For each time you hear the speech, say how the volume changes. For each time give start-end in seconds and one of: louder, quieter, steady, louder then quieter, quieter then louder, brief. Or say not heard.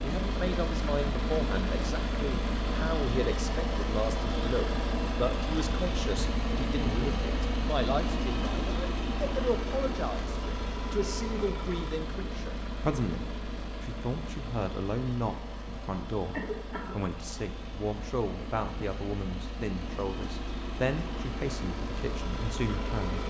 0.0-23.2 steady.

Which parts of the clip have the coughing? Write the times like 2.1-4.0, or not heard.
16.3-16.9.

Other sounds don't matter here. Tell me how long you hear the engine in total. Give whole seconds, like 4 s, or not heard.
23 s.